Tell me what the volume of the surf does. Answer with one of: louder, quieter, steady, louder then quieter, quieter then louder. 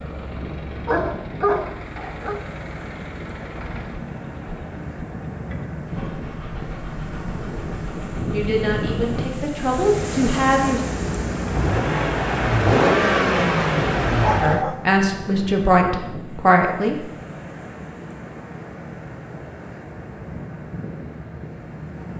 louder then quieter.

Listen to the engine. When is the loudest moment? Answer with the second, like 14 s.
13 s.